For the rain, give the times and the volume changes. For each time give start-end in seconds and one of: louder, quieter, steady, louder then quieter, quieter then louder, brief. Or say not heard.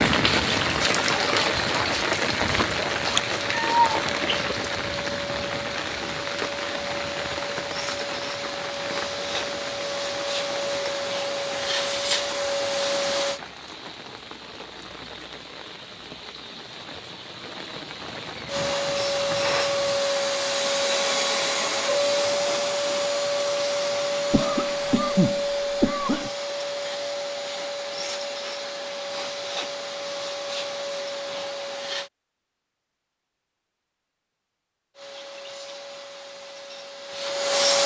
0.0-25.1 quieter.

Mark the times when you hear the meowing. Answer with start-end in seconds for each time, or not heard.
3.1-4.7.